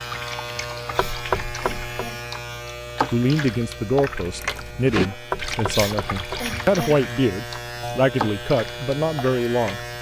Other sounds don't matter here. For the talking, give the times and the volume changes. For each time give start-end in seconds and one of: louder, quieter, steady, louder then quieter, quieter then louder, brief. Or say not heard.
3.1-9.8 steady.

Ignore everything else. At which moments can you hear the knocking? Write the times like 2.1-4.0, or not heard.
0.9-1.9, 5.3-6.5.